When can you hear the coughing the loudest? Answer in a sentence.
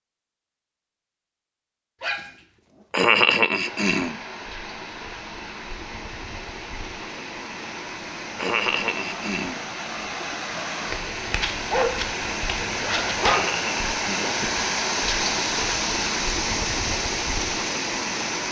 The volume of the coughing peaks at 3 seconds.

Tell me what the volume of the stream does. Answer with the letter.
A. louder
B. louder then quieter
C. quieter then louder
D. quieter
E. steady
A.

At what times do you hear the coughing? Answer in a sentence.
The coughing can be heard from 2.9 to 4.2 s, from 8.3 to 9.6 s and from 13.2 to 14.4 s.